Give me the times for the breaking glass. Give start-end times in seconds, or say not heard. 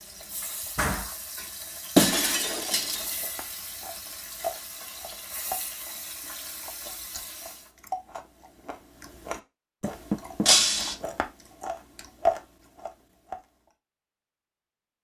1.9-3.1, 10.4-10.9.